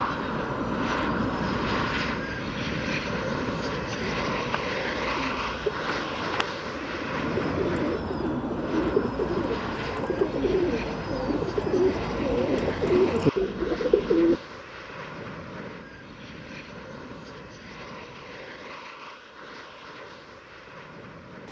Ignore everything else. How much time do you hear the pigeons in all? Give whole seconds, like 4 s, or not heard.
11 s.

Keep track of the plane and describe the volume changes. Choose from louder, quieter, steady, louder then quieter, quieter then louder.
quieter.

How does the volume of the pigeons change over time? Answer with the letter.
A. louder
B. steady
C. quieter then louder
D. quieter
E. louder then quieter
A.